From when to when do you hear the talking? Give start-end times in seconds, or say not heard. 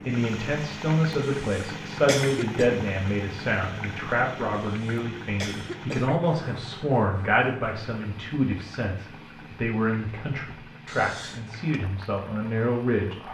0.1-13.2.